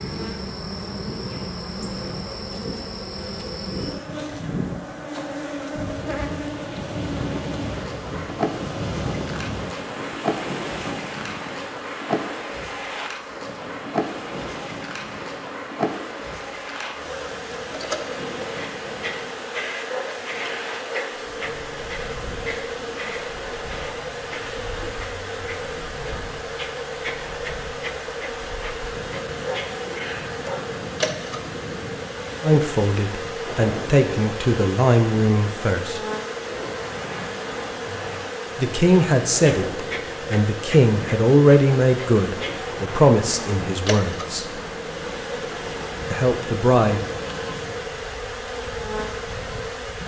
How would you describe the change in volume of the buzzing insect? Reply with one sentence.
The loudness of the buzzing insect stays about the same.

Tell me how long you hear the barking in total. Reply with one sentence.
The barking can be heard for 3 seconds in total.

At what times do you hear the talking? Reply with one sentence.
You can hear the talking from 32.4 to 36.0 s, from 38.5 to 44.5 s and from 46.1 to 47.0 s.